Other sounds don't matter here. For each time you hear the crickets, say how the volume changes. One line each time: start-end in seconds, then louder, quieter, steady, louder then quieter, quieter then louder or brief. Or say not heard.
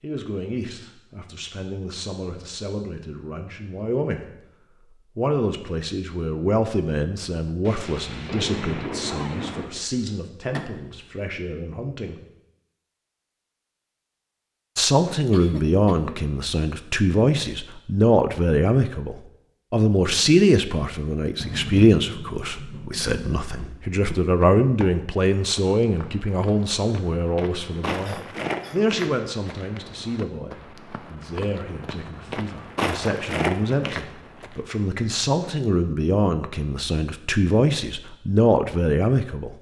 not heard.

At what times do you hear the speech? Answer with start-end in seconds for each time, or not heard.
0.0-4.2, 5.0-12.2, 14.8-39.5.